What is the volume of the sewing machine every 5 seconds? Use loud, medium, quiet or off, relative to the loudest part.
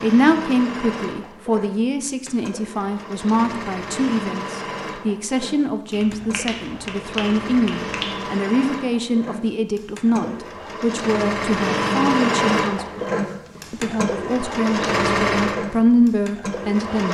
medium, medium, loud, loud.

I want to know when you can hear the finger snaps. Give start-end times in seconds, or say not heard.
5.9-8.2.